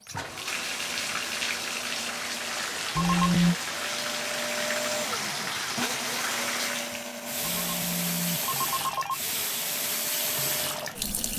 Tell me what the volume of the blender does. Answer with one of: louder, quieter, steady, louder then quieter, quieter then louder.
louder then quieter.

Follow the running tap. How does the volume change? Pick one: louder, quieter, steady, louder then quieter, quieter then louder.
steady.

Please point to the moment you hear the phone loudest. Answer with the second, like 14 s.
3 s.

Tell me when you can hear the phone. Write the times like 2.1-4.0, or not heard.
3.0-3.5, 7.4-9.2.